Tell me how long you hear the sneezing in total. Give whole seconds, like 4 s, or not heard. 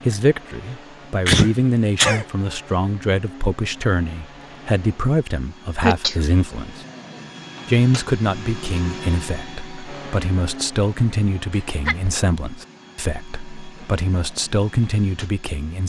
2 s.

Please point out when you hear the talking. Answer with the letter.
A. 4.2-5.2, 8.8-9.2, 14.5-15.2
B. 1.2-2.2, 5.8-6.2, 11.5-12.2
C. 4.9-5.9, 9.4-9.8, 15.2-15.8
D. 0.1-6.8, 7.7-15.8
D.